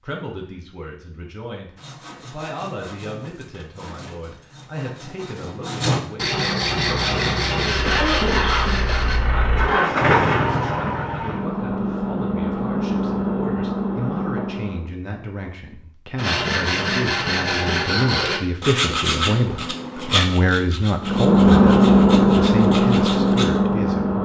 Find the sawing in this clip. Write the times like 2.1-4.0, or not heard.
1.8-9.2, 16.1-23.6.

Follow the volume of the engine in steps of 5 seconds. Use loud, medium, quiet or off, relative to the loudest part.
off, medium, medium, off, loud.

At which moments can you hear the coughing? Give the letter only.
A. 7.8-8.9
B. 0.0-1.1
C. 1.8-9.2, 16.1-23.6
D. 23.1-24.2
A.